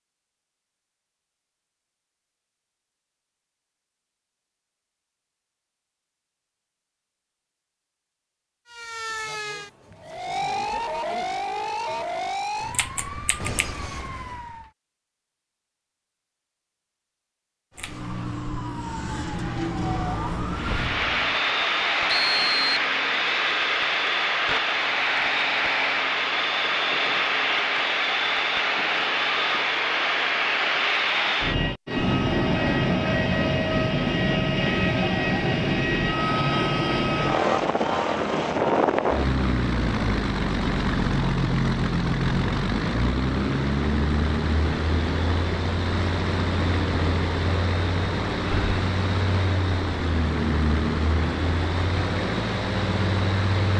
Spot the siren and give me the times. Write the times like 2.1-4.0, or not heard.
8.7-14.7, 17.8-21.4.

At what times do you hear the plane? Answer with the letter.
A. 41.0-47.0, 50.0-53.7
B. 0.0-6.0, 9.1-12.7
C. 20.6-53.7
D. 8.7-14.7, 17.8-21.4
C.